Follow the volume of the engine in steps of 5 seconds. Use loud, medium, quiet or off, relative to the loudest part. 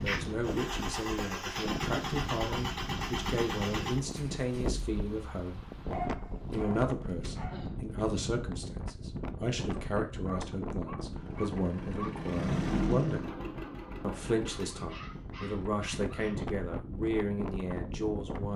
loud, off, loud, off.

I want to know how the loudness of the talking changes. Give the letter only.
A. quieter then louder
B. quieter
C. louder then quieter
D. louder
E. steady
E.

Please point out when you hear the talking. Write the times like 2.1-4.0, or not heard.
0.0-5.6, 6.5-13.3, 14.0-18.5.